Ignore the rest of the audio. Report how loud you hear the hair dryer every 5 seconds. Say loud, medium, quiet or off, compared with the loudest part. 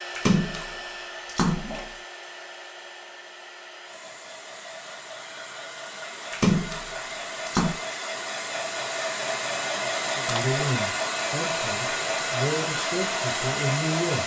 quiet, medium, loud.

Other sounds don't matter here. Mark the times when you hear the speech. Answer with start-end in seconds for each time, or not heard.
10.2-14.2.